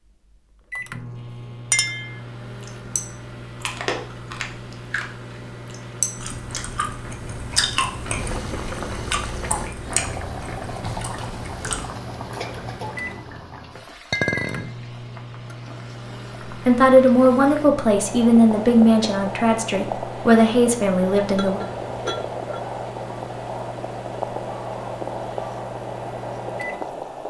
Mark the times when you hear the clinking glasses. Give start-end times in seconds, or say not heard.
1.7-2.2, 14.1-14.7, 21.4-22.6.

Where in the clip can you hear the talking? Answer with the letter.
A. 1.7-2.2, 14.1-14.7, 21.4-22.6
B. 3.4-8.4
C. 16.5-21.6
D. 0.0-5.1
C.